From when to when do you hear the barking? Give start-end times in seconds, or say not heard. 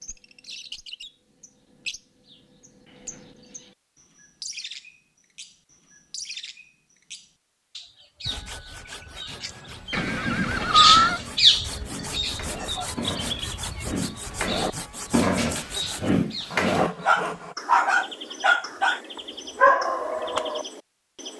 9.9-20.6.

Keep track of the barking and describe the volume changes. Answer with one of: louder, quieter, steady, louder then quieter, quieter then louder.
louder.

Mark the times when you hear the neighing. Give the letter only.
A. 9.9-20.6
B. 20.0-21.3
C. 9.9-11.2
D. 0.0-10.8
C.